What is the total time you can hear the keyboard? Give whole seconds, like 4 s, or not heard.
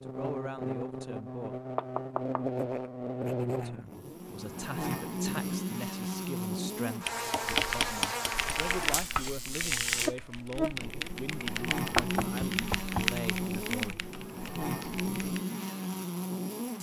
8 s.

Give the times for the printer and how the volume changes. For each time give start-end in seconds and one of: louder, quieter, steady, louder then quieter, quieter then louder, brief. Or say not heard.
not heard.